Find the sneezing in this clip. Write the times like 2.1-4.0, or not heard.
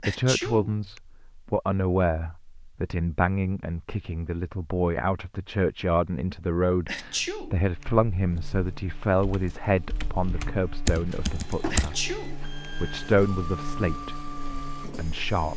0.0-1.0, 6.8-7.8, 11.7-12.4.